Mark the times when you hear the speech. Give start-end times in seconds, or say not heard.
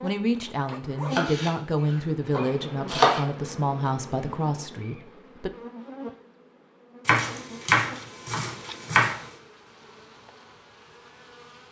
0.0-5.5.